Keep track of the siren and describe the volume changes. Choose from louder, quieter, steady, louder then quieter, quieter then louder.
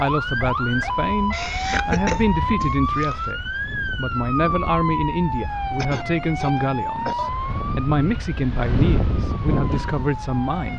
quieter.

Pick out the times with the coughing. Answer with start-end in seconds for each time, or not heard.
1.3-3.3, 5.8-7.3.